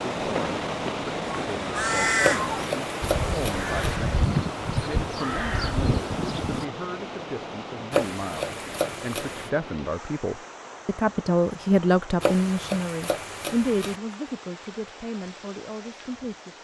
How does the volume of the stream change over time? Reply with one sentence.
The volume of the stream goes down.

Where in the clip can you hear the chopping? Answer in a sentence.
You can hear the chopping from 2.2 to 4.0 s, from 7.9 to 9.5 s and from 12.2 to 13.9 s.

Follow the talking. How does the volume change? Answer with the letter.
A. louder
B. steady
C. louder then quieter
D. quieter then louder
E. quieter
C.